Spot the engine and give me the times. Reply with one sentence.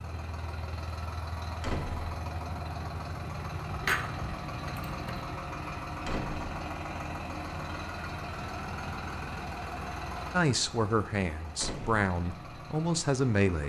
The engine can be heard from 0.0 to 13.6 s.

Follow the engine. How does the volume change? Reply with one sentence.
The loudness of the engine goes down.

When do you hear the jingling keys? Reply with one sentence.
The jingling keys can be heard from 3.7 to 5.2 s.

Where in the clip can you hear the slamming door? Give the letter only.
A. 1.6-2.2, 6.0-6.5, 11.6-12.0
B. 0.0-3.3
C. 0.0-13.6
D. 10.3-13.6
A.